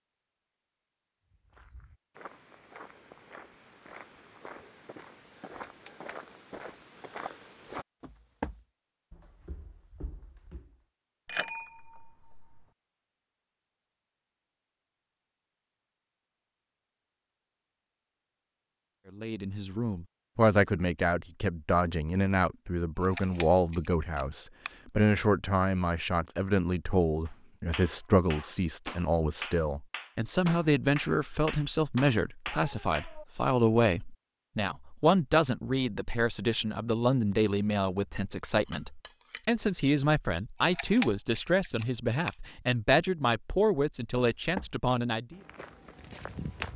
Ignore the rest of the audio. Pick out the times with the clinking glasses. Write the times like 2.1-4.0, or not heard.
11.2-12.7, 38.5-39.5.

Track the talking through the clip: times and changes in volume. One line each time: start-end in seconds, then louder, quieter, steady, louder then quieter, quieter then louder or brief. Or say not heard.
19.1-45.4 steady.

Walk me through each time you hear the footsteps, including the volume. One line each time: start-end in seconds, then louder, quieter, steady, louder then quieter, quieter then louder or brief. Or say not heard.
1.3-10.8 louder then quieter
44.4-46.7 brief.